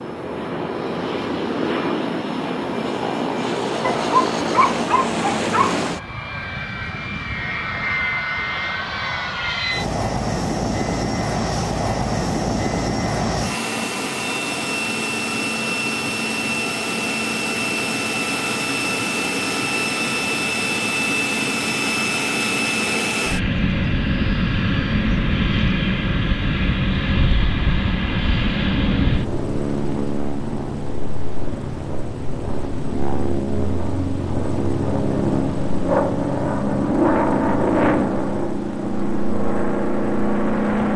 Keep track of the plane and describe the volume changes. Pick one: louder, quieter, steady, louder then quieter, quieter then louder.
steady.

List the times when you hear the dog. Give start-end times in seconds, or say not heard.
3.8-5.8.